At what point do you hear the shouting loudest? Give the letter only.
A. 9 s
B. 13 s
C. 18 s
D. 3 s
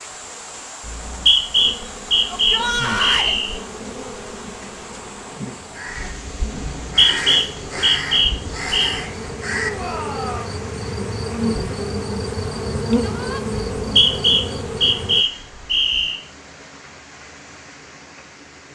D.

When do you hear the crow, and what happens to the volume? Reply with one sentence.
The crow can be heard from 4.6 to 9.7 s, getting louder.